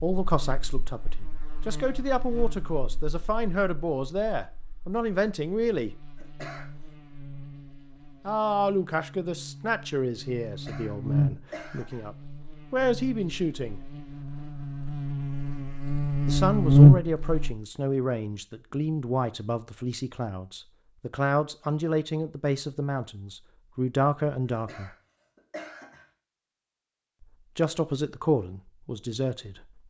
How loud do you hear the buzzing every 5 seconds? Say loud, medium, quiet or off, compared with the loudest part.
quiet, quiet, quiet, loud, off, off.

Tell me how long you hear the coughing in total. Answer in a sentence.
The coughing can be heard for 4 seconds in total.